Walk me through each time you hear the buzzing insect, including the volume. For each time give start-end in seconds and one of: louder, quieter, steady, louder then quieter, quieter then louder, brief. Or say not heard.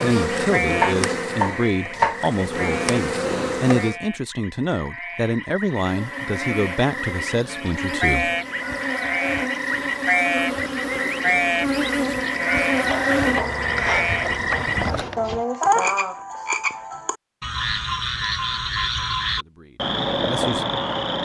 0.0-4.0 quieter then louder
5.8-15.2 louder.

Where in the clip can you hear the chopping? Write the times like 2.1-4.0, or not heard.
0.8-2.2, 12.7-15.4.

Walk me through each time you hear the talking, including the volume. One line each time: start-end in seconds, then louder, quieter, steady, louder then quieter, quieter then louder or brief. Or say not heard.
0.0-8.3 steady
19.1-20.6 brief.